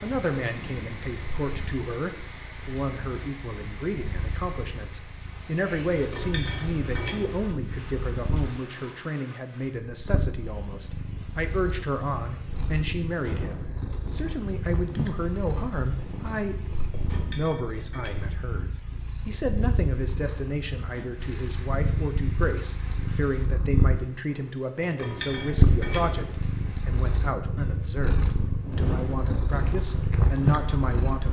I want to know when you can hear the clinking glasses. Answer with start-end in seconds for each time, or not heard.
6.0-7.3, 16.9-18.4, 24.8-26.4.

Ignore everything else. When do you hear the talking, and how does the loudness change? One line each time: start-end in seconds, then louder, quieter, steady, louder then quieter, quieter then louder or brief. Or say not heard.
0.0-31.2 steady.